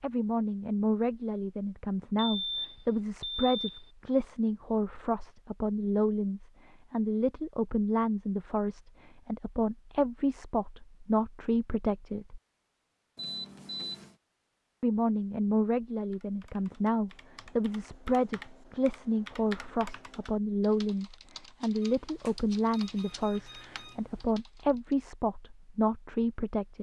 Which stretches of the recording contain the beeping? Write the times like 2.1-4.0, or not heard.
2.1-3.9, 13.2-14.2, 21.8-24.2.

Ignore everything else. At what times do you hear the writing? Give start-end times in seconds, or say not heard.
not heard.